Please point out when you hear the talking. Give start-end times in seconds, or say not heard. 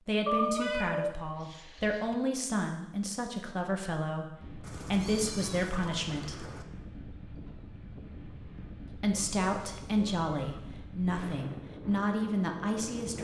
0.1-6.5, 8.8-13.1.